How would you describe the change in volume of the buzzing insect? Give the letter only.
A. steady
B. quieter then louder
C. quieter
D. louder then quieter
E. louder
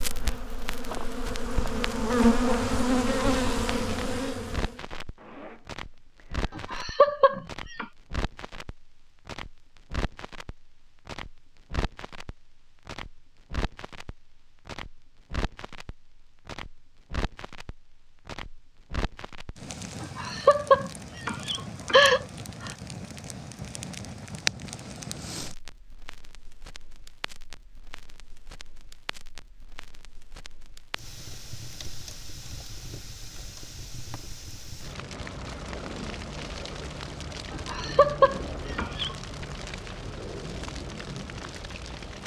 D.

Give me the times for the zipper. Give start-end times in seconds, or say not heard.
5.2-6.7.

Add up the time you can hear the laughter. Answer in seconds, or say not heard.
6 s.